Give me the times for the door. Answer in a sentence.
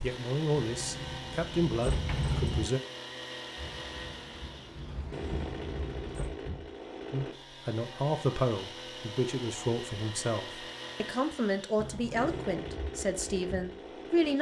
The door can be heard from 0.7 to 2.6 s, from 4.8 to 6.3 s and from 11.8 to 12.6 s.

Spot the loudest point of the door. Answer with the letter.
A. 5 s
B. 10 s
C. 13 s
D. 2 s
D.